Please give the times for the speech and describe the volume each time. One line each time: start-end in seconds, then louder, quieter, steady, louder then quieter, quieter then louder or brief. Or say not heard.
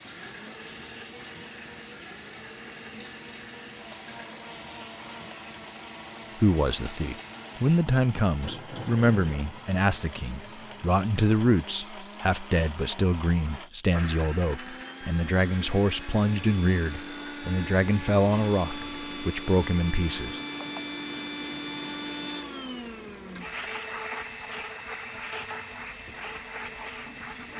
6.3-20.4 steady.